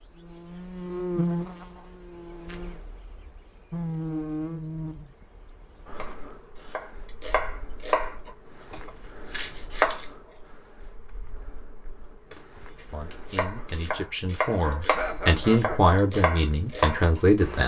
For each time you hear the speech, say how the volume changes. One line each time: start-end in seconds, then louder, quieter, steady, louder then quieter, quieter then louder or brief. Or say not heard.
12.9-17.6 louder then quieter.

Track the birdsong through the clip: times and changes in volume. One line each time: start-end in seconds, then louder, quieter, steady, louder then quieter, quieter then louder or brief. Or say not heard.
not heard.